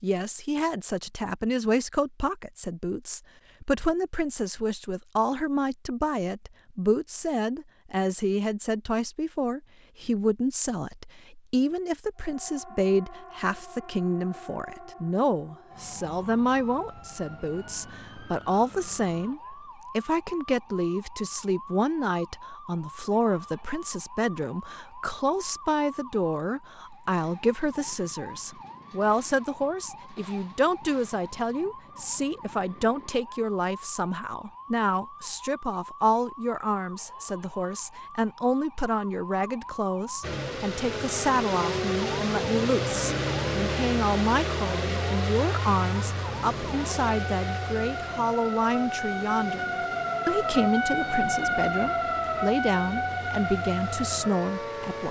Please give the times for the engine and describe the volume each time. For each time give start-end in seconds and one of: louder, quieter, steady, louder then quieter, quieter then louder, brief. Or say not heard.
40.2-55.0 quieter.